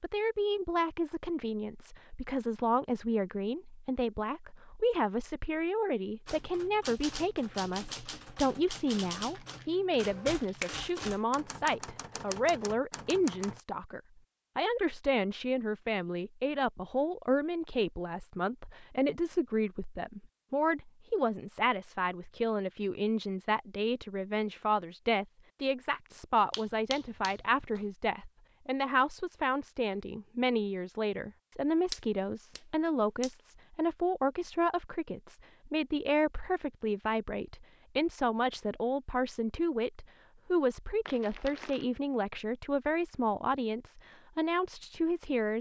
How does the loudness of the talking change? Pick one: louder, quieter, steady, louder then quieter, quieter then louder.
steady.